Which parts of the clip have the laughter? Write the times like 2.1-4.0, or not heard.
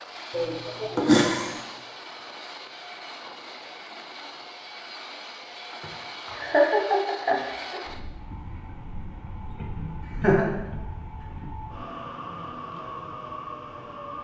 0.3-1.6, 5.7-7.8, 9.8-10.5.